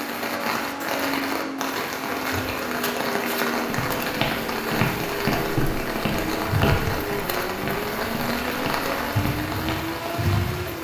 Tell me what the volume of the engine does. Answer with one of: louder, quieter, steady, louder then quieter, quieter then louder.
steady.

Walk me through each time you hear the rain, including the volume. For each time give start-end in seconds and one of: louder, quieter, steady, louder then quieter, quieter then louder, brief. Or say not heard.
0.0-10.7 steady.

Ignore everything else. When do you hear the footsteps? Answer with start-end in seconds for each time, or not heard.
3.6-9.8.